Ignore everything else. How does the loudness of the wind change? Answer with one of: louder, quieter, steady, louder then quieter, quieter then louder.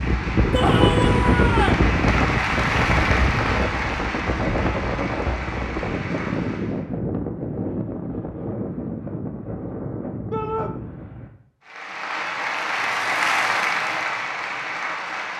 quieter.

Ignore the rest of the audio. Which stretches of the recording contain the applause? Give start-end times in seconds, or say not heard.
0.0-6.8, 11.7-15.3.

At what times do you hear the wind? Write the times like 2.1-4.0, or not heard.
0.0-11.3.